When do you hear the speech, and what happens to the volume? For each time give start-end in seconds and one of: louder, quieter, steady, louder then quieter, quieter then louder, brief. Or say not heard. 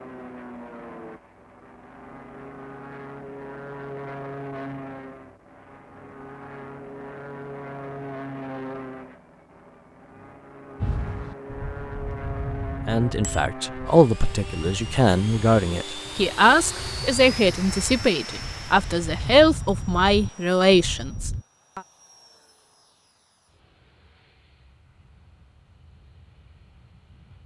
12.8-21.8 steady.